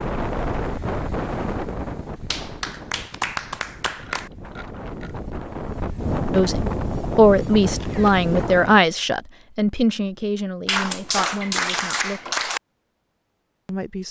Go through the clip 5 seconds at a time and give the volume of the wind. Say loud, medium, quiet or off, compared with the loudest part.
loud, loud, off.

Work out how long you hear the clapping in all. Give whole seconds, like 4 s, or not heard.
4 s.